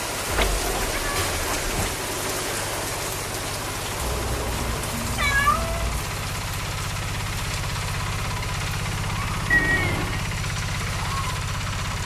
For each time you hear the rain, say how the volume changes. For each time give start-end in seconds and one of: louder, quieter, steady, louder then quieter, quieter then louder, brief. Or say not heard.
0.0-12.0 quieter.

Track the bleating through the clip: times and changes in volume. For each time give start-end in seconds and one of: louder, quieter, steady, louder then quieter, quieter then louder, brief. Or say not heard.
not heard.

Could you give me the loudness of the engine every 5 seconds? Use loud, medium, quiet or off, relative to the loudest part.
medium, loud, loud.